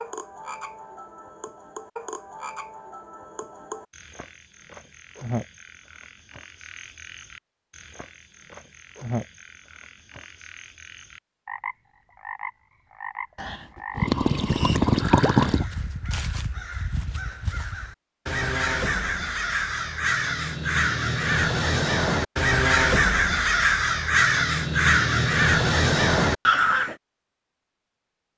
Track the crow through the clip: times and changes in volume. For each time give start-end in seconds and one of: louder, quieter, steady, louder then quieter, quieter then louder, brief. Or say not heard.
15.4-26.9 louder.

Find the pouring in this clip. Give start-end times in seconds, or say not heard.
13.3-15.7.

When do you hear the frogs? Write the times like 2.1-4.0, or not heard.
0.0-15.6.